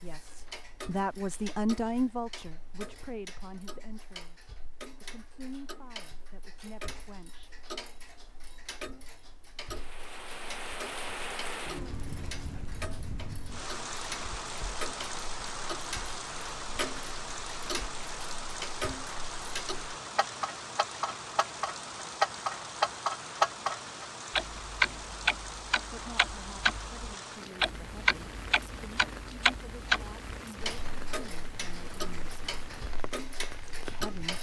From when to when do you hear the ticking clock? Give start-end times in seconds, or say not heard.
0.0-34.3.